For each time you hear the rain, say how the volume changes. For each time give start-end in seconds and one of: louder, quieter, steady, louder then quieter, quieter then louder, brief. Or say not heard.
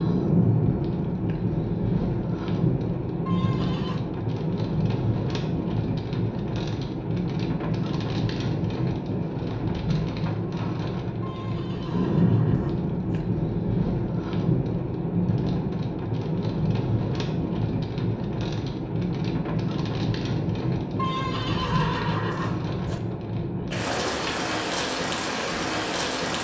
0.0-26.3 steady.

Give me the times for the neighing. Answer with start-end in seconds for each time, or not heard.
3.2-4.0, 11.2-13.2, 20.9-23.0.